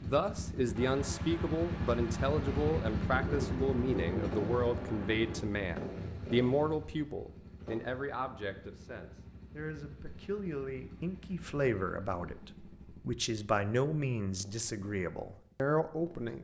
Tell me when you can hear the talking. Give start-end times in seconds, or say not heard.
0.0-16.3.